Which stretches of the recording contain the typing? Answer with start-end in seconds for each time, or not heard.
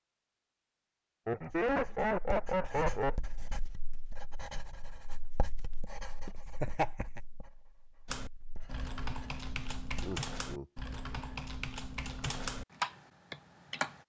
8.1-14.0.